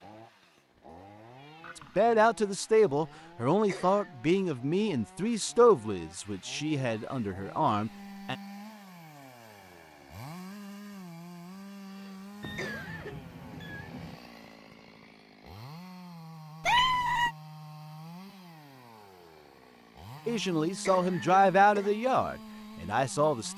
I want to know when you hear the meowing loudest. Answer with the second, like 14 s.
17 s.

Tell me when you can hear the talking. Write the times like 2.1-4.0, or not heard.
1.9-8.3, 20.2-23.5.